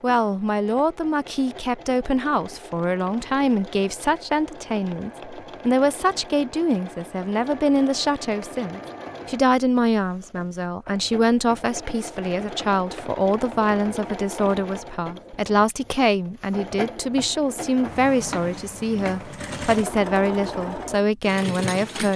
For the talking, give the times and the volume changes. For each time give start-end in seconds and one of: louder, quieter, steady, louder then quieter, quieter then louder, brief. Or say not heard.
0.0-22.1 steady.